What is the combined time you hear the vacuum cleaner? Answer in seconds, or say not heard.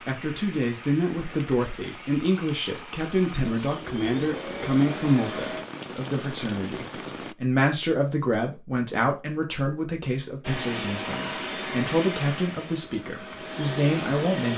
10 s.